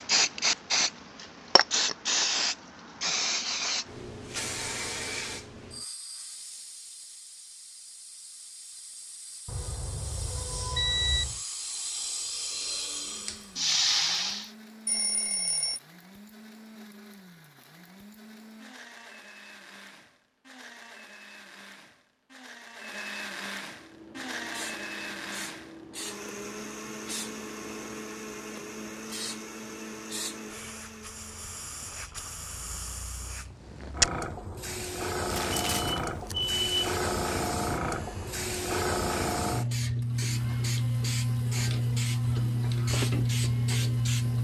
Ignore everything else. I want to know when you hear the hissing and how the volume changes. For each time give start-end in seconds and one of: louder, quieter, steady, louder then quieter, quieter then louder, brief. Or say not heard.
0.0-14.5 quieter then louder
23.6-44.3 louder.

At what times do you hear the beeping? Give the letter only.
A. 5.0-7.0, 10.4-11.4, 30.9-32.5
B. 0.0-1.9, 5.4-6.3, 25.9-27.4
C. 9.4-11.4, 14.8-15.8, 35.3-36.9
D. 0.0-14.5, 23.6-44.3
C.